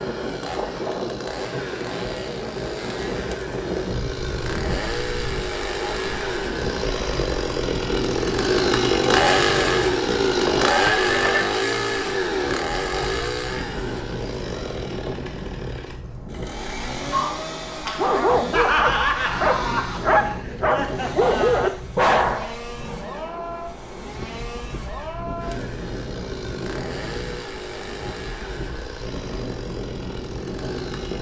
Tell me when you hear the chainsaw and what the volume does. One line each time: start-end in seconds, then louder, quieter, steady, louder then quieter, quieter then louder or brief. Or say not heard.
0.0-31.1 louder then quieter.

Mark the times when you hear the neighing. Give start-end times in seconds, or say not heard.
10.4-11.4.